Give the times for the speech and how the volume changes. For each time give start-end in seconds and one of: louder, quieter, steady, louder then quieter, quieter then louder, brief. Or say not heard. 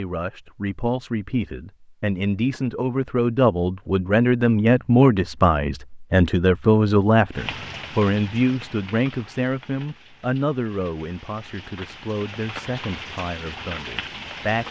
0.0-14.6 louder then quieter.